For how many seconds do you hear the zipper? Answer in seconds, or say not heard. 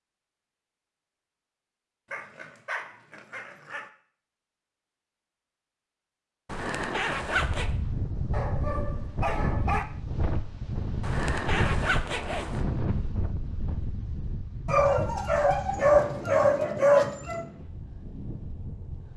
3 s.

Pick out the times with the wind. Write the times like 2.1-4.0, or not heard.
7.3-19.1.